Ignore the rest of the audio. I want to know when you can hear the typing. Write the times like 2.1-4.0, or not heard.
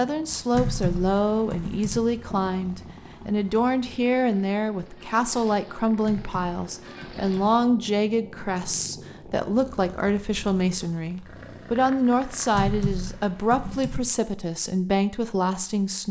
0.5-2.0, 6.0-7.5, 12.5-14.0.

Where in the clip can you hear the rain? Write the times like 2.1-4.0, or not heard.
not heard.